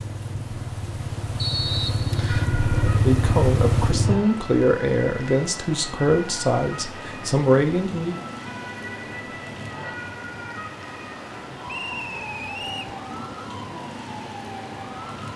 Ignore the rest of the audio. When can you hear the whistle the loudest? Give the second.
2 s.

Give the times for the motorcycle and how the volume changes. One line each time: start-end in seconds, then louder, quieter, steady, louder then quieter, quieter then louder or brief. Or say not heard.
0.0-4.2 louder.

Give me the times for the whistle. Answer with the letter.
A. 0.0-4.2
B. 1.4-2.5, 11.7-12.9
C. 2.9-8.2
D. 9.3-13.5
B.